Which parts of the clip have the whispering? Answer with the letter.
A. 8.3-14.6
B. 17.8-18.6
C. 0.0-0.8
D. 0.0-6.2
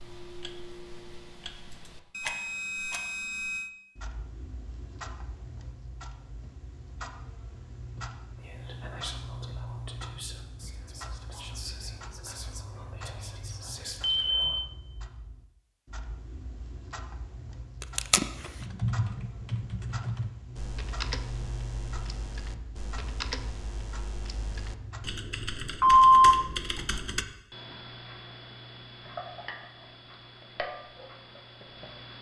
A.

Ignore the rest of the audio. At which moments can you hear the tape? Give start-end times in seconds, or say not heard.
17.8-18.6.